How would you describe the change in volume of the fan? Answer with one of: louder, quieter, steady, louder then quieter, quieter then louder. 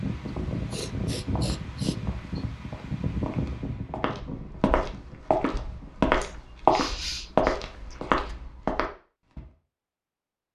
quieter.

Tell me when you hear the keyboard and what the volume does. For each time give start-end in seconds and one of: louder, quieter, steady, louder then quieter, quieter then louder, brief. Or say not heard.
not heard.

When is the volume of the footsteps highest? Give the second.
7 s.